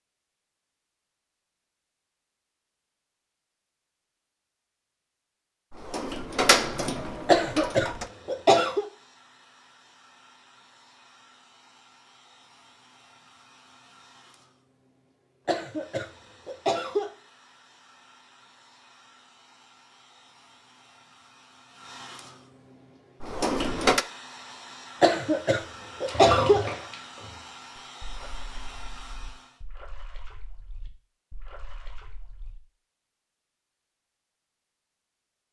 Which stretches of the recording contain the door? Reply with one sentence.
You can hear the door from 5.7 to 8.1 s and from 23.2 to 24.1 s.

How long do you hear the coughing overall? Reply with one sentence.
The coughing can be heard for 5 seconds in total.